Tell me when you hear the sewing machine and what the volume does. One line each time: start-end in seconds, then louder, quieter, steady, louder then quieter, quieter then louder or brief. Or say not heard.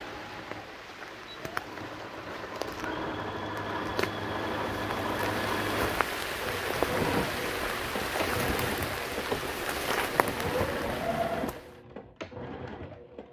0.0-13.2 louder.